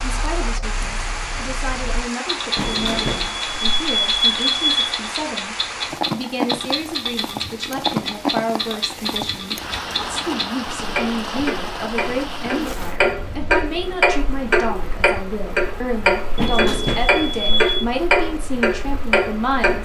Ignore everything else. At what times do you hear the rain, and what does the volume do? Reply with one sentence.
You can hear the rain from 0.0 to 19.8 s, getting quieter.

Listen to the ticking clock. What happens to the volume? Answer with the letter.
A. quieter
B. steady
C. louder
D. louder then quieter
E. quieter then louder
C.